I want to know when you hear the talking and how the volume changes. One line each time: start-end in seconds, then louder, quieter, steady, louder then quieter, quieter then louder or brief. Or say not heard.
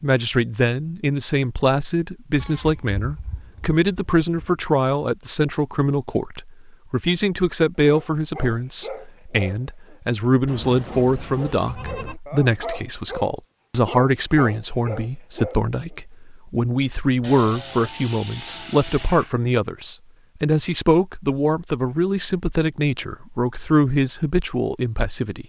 0.0-25.4 steady.